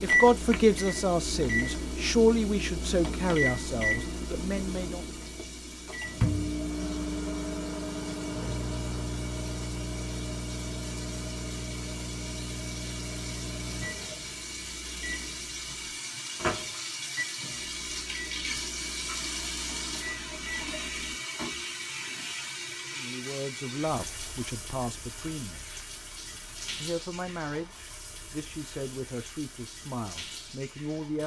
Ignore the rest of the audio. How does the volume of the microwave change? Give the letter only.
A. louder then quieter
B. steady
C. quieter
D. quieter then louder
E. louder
C.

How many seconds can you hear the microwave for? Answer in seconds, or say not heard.
21 s.